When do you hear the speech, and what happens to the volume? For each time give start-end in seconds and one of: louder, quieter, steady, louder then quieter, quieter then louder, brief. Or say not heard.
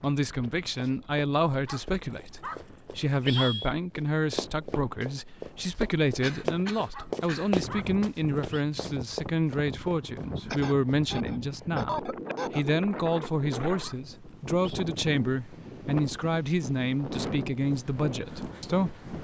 0.0-18.9 steady.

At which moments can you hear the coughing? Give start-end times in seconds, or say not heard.
6.2-7.5, 10.5-12.7.